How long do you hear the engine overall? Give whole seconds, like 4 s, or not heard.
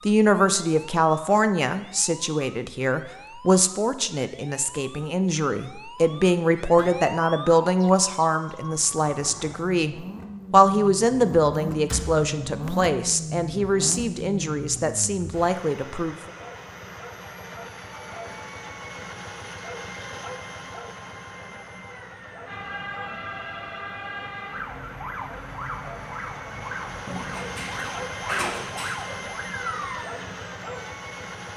23 s.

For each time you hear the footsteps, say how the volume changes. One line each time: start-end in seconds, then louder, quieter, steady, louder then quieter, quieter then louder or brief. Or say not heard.
not heard.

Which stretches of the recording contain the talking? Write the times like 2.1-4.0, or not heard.
0.1-16.1.